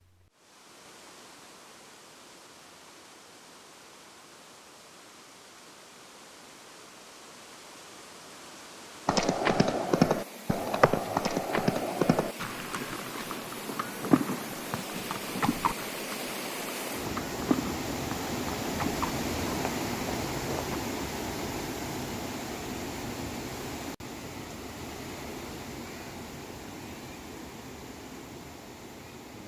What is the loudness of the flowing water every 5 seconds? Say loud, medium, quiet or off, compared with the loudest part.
quiet, quiet, medium, loud, loud, medium.